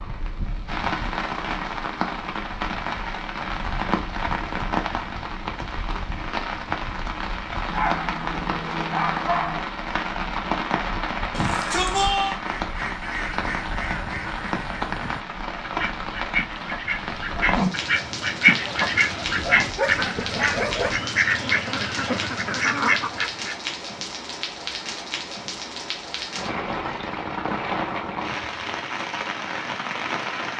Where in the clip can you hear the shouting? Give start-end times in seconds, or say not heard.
11.3-12.4.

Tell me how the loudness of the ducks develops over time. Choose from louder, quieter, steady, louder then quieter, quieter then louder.
louder.